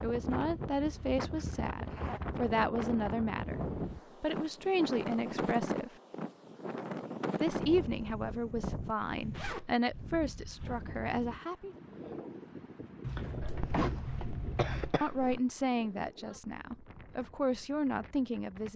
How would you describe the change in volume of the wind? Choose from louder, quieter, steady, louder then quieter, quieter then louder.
quieter.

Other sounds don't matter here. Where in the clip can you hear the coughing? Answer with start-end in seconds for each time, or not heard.
13.4-15.4.